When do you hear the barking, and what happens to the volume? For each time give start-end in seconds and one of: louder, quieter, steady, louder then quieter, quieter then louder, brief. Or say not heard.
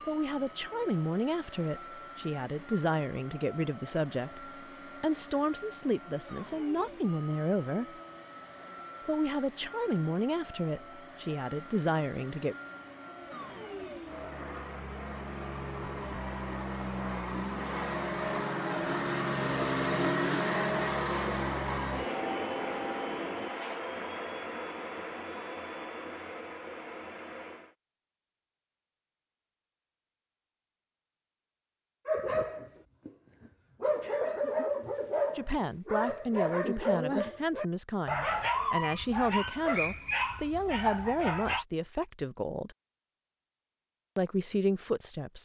32.0-41.6 steady.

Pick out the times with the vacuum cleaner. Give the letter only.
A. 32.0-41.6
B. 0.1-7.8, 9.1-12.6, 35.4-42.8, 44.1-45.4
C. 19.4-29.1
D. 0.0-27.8
D.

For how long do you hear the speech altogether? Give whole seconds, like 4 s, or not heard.
20 s.